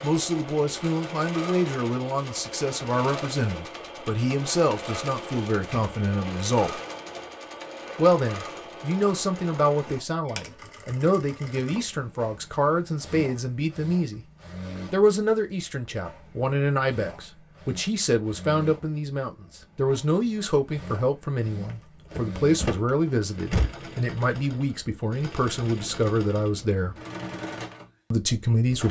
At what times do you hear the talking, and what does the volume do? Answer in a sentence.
The talking can be heard from 0.0 to 6.8 s, at a steady volume; from 8.0 to 14.2 s, at a steady volume; from 14.9 to 26.9 s, at a steady volume; and briefly from 28.1 to 28.8 s.